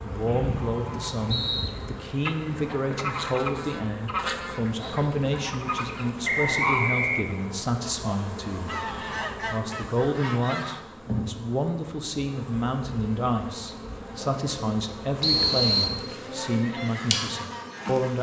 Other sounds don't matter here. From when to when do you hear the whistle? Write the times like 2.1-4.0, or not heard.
0.2-1.7, 6.2-7.2, 15.2-15.9.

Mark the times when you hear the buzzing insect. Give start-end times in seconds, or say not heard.
0.0-18.1.